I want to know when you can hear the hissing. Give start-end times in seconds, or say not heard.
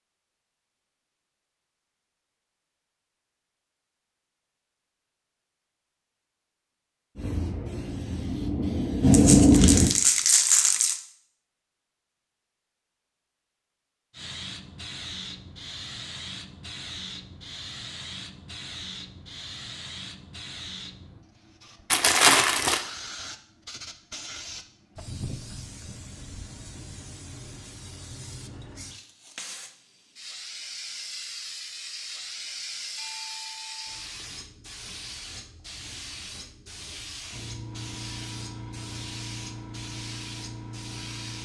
7.2-9.9, 14.1-41.3.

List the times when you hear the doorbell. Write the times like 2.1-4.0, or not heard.
33.0-33.9.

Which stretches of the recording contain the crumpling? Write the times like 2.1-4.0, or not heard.
9.1-11.0, 21.9-22.8.